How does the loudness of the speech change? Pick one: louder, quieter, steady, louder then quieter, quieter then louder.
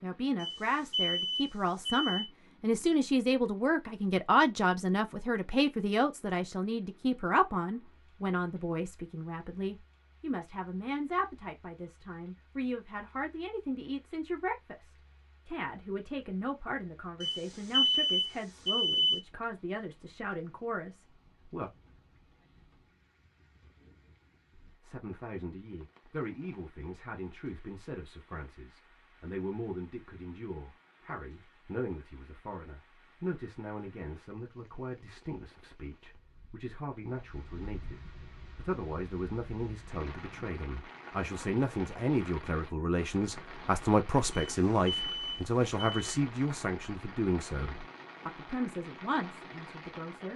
quieter then louder.